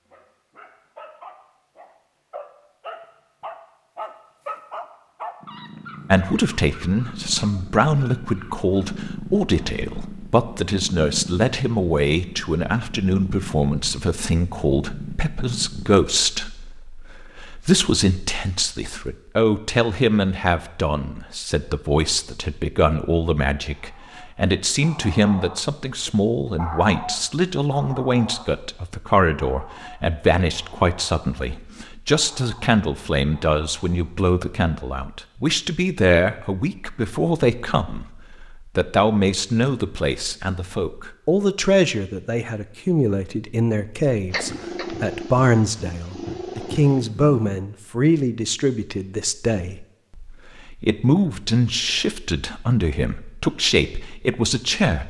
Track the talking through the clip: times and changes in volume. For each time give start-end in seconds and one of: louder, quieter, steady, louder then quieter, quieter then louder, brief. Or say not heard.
6.1-55.0 steady.